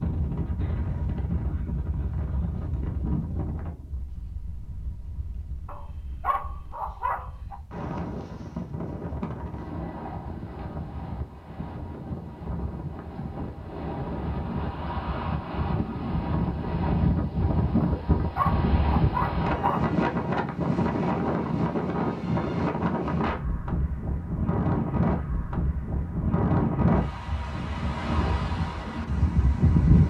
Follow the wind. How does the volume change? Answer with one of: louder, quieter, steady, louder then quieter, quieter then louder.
louder.